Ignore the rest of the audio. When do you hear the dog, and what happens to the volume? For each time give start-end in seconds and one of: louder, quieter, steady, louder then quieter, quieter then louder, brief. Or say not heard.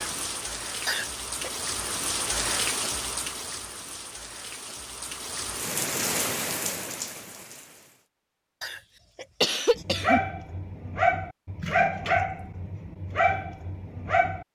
9.8-14.4 louder then quieter.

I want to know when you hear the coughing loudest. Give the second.
10 s.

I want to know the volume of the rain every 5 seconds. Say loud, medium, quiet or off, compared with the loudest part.
loud, loud, off.